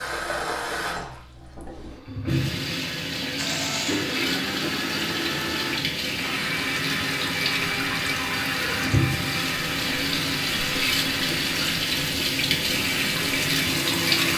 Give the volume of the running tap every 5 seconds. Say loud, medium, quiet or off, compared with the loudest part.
medium, loud, loud.